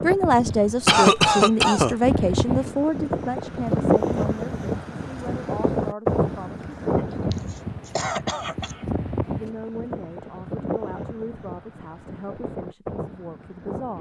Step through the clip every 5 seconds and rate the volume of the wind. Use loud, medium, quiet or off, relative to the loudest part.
loud, loud, medium.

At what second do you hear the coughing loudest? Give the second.
1 s.